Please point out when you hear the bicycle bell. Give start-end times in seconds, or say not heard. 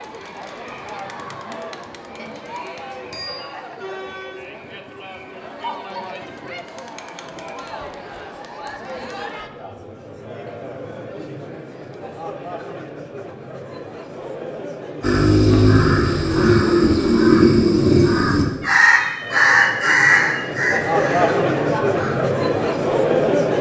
2.1-3.6.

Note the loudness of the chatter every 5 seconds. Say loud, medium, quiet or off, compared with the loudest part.
quiet, quiet, quiet, quiet, loud.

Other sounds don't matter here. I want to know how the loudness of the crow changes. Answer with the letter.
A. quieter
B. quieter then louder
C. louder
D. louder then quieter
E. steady
A.